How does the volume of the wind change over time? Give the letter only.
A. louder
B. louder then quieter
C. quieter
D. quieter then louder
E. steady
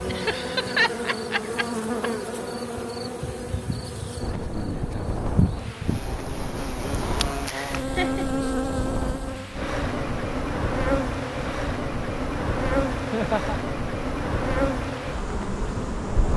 E.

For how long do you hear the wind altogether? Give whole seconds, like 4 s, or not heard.
12 s.